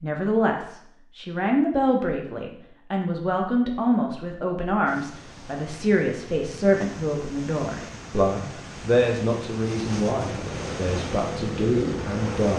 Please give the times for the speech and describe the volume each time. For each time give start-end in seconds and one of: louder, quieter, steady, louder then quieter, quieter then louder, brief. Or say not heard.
0.0-12.5 steady.